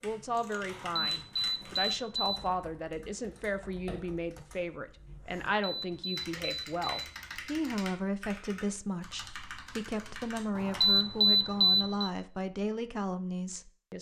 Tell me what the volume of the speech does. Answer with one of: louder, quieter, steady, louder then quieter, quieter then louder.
steady.